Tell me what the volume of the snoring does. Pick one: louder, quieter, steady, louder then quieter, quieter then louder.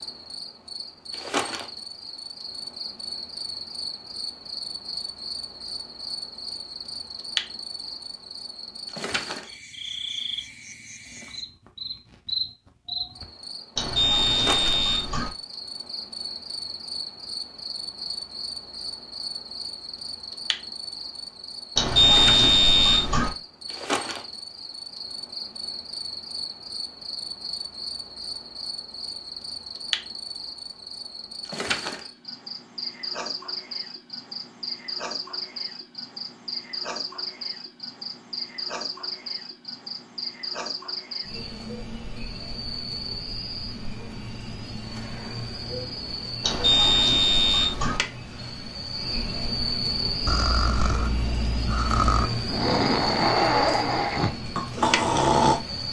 louder.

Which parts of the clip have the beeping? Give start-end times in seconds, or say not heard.
13.8-15.3, 21.8-23.3, 46.4-48.0.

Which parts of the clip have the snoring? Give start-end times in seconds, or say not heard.
50.2-55.6.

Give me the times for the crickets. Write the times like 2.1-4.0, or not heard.
0.0-55.8.